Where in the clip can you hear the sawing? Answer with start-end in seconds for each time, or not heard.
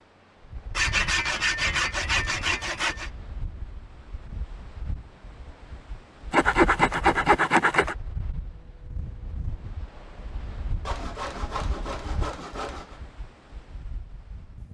0.7-3.1, 6.3-8.0, 10.8-13.0.